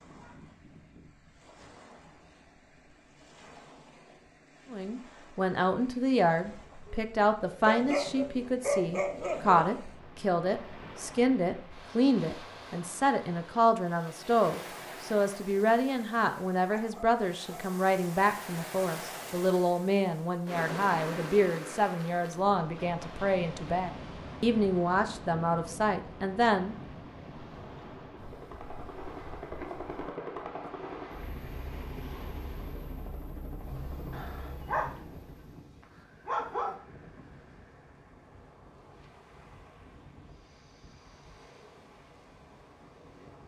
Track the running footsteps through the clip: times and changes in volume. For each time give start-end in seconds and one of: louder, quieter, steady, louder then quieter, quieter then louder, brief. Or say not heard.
not heard.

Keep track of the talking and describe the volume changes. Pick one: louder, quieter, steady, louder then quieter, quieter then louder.
steady.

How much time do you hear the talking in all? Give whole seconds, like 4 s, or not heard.
22 s.